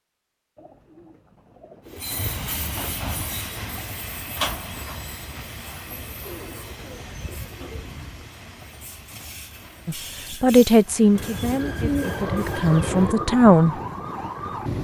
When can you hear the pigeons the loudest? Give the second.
12 s.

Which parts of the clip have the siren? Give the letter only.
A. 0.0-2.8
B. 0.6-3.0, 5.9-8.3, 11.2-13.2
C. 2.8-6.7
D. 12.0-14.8
D.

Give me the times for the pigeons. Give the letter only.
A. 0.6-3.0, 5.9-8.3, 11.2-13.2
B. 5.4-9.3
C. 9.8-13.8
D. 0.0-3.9
A.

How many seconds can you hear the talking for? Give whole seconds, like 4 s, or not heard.
4 s.